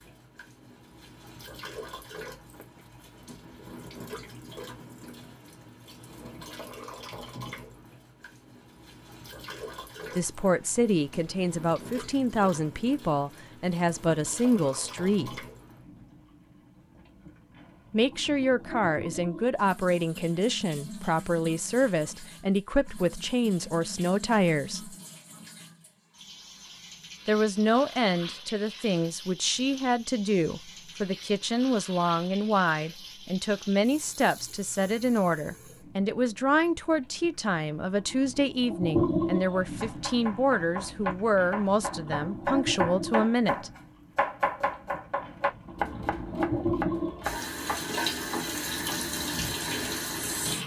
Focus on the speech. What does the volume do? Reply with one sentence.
The volume of the speech stays about the same.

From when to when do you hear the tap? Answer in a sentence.
You can hear the tap from 0.0 to 50.6 s.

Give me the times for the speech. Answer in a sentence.
The speech can be heard from 10.2 to 15.4 s, from 17.9 to 24.9 s and from 27.2 to 43.7 s.